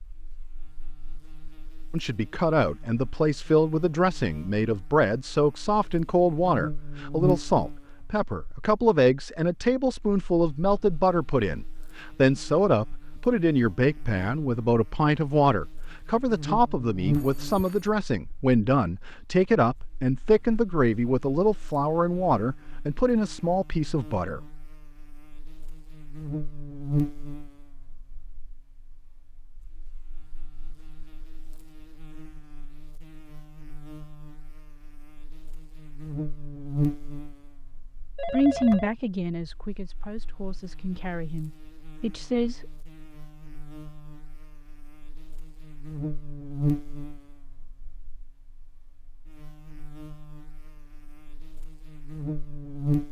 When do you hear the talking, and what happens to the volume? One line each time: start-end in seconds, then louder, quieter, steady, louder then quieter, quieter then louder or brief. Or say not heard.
1.9-24.4 steady
38.3-42.6 quieter then louder.